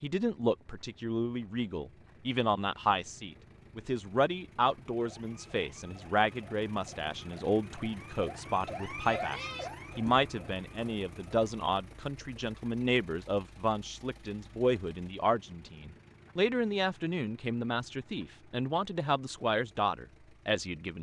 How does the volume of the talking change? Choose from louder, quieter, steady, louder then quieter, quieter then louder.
steady.